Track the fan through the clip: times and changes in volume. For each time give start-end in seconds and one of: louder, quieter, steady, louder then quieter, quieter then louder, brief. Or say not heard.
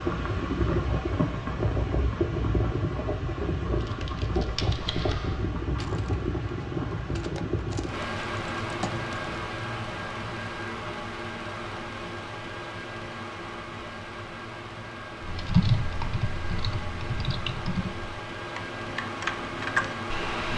0.0-20.5 quieter.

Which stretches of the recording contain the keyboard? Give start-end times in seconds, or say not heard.
3.8-9.4, 15.2-20.5.